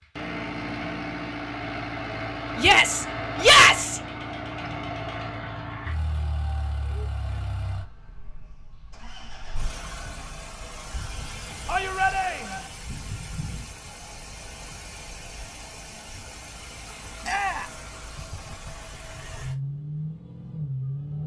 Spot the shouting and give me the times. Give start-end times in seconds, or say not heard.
2.5-4.0, 11.7-12.7, 17.2-17.8.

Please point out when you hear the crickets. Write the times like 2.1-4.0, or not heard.
not heard.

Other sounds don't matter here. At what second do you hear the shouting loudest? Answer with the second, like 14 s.
4 s.